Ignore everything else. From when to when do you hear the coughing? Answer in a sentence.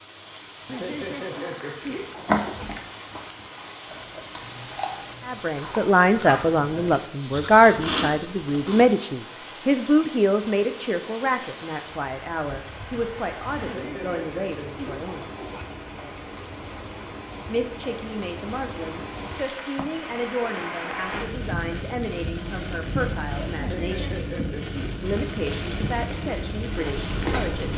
The coughing can be heard from 0.7 to 2.7 s, from 13.6 to 15.7 s and from 23.6 to 24.9 s.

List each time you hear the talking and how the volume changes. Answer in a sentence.
The talking can be heard from 5.2 to 15.3 s, getting quieter; from 17.4 to 24.2 s, at a steady volume; and briefly from 25.0 to 27.7 s.